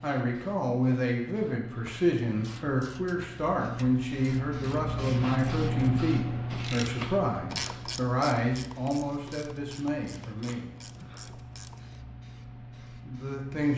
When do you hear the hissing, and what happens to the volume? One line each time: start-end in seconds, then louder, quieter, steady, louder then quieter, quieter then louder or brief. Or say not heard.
0.0-13.7 louder then quieter.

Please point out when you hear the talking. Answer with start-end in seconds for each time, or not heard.
0.0-10.8, 12.9-13.7.